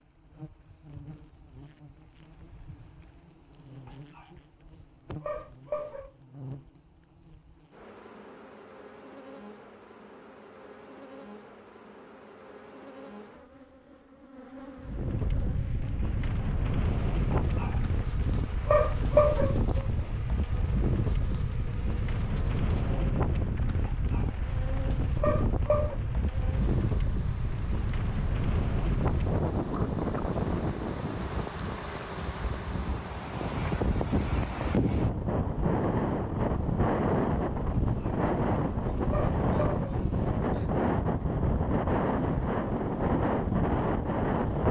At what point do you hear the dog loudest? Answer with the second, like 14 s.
19 s.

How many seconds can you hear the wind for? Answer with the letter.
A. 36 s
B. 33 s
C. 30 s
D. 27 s
C.